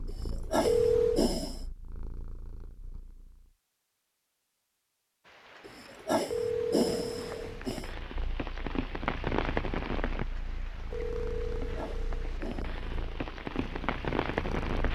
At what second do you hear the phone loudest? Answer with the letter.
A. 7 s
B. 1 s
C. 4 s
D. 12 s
B.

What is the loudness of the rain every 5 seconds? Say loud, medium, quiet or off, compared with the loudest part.
off, loud, loud.